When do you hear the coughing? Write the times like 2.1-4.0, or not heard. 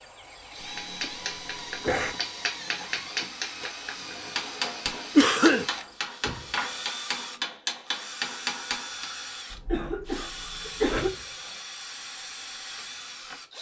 0.6-2.1, 5.2-5.7, 9.5-11.1.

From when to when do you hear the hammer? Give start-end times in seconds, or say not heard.
0.8-9.1.